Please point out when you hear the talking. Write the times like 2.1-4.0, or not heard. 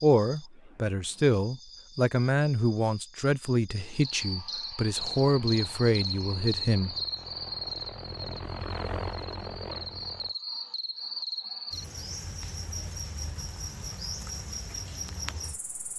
0.0-7.0.